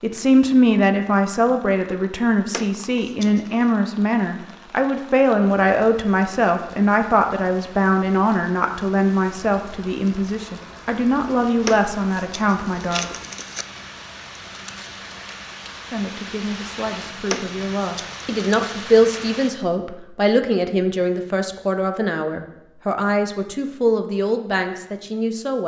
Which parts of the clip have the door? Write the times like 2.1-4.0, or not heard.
not heard.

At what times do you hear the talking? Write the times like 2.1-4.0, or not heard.
0.0-13.1, 15.9-25.6.